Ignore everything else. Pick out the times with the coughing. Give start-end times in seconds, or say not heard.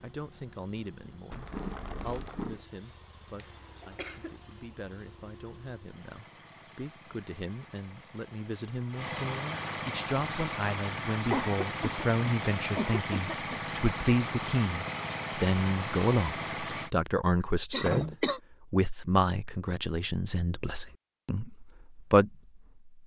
3.4-4.4, 11.3-13.6, 17.7-18.4.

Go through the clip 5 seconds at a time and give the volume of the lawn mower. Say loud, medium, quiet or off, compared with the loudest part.
quiet, medium, loud, loud, off.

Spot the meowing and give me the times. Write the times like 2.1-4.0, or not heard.
1.3-2.6.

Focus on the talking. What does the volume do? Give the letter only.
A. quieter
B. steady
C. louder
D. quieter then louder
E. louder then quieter
C.